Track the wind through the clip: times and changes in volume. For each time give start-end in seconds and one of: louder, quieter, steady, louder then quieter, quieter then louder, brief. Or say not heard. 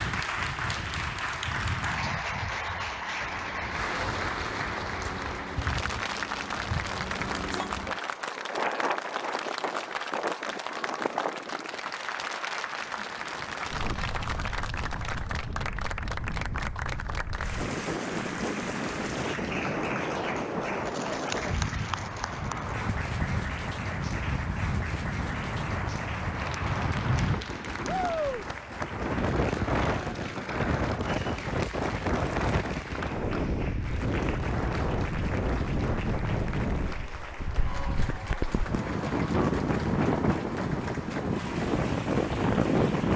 0.0-43.1 louder.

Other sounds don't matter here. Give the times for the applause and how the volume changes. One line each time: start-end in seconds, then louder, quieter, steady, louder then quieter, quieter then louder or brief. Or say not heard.
0.0-43.1 quieter.